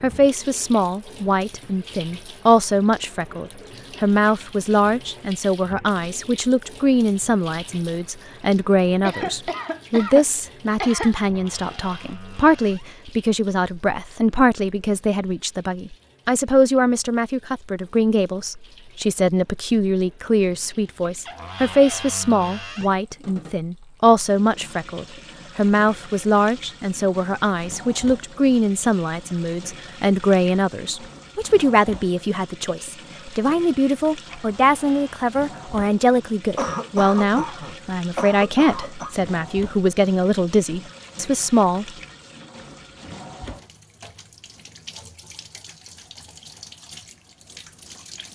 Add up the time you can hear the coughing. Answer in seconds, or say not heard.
5 s.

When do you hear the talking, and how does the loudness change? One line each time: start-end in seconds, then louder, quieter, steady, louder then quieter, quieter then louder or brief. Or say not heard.
0.0-41.9 steady.